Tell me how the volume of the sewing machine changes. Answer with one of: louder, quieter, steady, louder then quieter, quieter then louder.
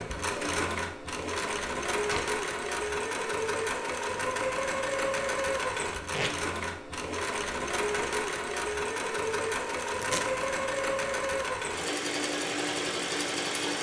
steady.